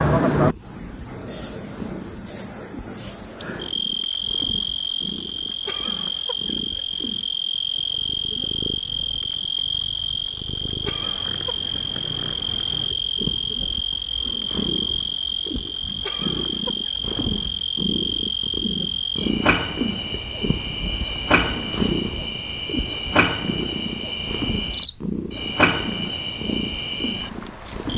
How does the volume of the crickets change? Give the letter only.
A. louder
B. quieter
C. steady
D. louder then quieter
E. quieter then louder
C.